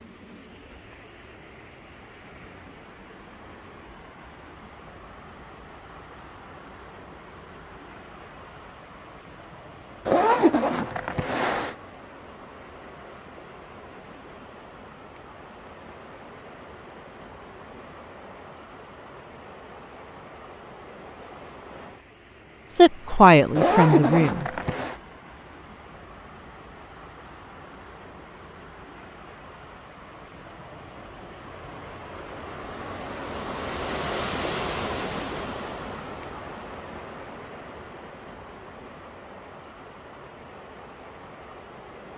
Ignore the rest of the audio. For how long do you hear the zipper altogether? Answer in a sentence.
The zipper can be heard for 3 seconds in total.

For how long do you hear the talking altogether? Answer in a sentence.
The talking can be heard for 2 seconds in total.